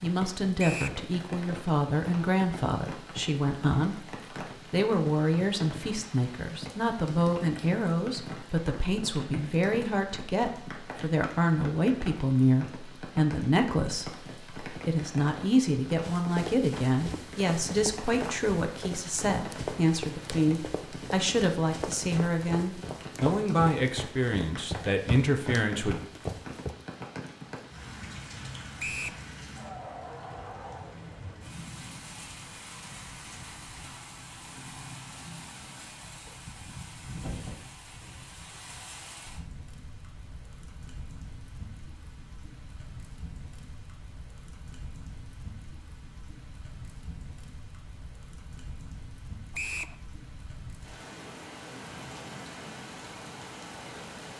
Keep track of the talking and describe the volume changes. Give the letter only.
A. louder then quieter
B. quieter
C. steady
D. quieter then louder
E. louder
C.